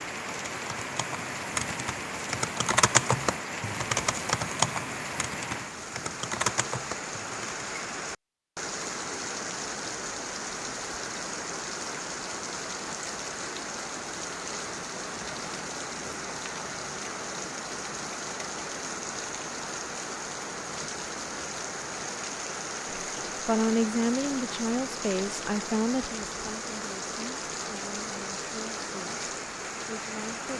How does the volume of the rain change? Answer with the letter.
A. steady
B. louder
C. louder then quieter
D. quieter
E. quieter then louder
A.